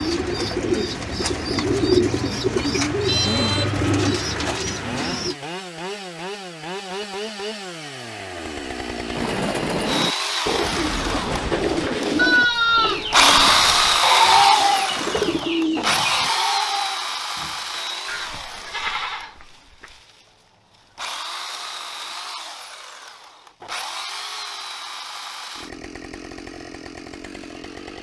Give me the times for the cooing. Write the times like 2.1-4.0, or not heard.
0.0-5.3, 9.1-16.3.